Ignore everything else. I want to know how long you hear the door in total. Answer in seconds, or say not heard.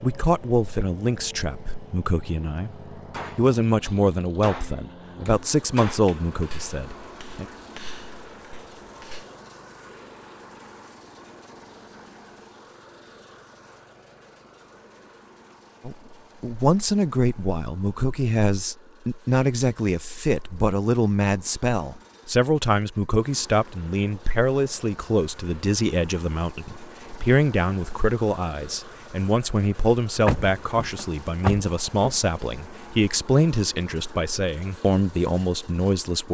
2 s.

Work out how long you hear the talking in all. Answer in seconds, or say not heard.
28 s.